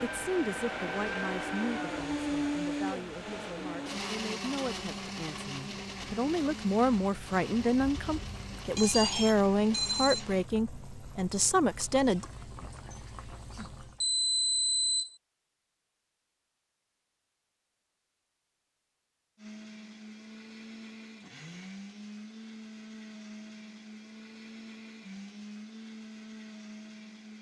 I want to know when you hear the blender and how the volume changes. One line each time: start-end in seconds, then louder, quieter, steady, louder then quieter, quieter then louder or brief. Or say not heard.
0.0-10.5 quieter
19.4-27.3 steady.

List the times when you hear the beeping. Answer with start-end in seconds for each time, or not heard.
8.7-10.2, 14.0-15.2.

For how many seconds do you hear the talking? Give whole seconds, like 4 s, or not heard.
12 s.